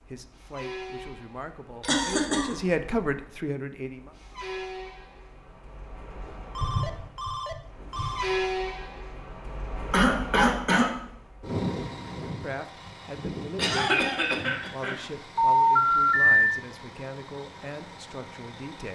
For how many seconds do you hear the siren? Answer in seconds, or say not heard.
not heard.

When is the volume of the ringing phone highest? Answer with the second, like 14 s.
16 s.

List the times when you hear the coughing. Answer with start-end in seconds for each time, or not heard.
1.9-2.5, 9.9-10.9, 13.6-15.1.